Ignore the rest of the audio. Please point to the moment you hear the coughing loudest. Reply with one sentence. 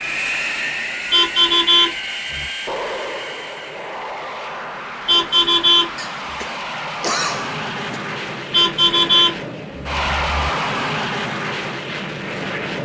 The loudest moment of the coughing is at 7 seconds.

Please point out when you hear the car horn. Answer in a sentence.
You can hear the car horn from 1.1 to 2.5 s, from 5.0 to 5.9 s and from 8.5 to 10.5 s.